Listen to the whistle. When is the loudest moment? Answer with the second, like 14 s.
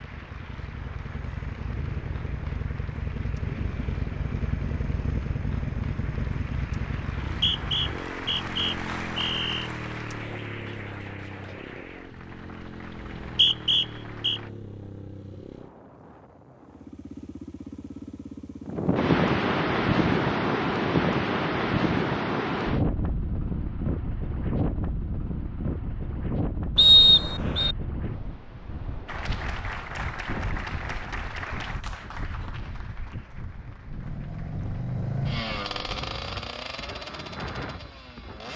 27 s.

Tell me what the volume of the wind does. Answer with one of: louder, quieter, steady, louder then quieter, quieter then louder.
quieter.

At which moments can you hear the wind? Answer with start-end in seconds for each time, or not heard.
18.6-38.5.